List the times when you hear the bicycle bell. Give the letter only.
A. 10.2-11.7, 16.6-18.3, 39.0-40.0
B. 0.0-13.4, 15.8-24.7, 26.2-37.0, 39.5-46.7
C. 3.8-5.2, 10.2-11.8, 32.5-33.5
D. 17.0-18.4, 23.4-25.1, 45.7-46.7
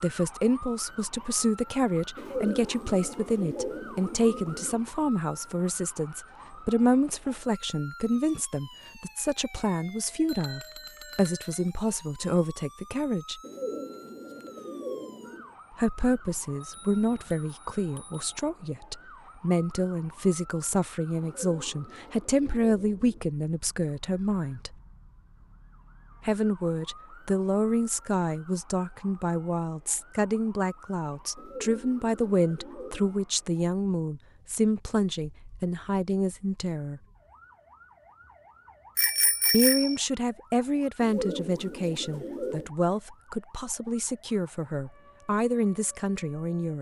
A.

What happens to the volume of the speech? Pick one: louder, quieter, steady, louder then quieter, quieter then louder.
steady.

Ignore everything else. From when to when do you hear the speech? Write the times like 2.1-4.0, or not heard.
0.0-13.4, 15.8-24.7, 26.2-37.0, 39.5-46.7.